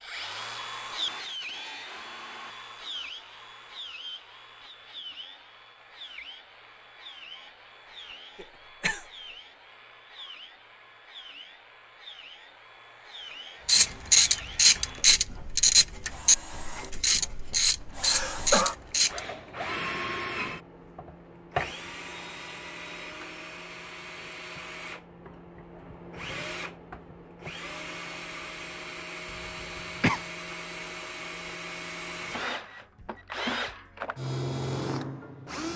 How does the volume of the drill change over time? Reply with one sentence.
The volume of the drill goes down, then up.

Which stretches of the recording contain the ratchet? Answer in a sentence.
The ratchet can be heard from 13.7 to 19.2 s.